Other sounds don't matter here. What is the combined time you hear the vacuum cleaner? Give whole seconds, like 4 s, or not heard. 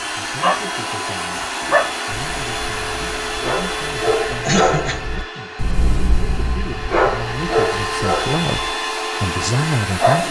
10 s.